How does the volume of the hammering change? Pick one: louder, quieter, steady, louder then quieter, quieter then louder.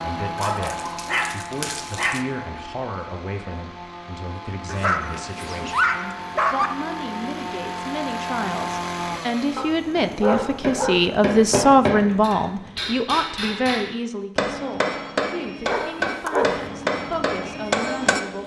steady.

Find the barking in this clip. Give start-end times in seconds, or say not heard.
0.3-2.2, 4.7-6.7, 9.6-11.1, 15.7-16.6.